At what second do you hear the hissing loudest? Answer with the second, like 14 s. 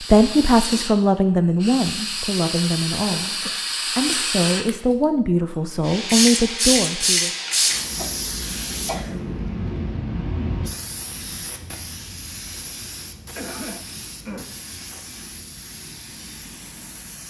7 s.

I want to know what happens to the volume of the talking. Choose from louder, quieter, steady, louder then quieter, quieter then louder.
quieter then louder.